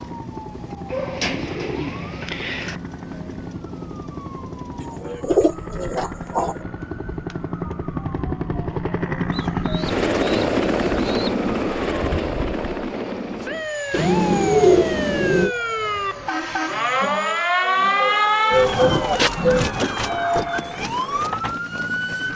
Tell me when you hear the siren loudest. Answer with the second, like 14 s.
18 s.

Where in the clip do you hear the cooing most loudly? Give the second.
15 s.